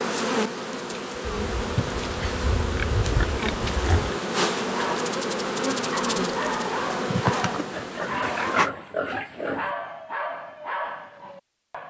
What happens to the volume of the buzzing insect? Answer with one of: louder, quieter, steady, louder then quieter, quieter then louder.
steady.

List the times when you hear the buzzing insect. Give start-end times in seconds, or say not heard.
0.0-8.7.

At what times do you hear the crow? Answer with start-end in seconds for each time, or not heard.
not heard.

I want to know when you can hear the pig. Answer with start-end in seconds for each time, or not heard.
1.2-4.2, 7.7-9.8.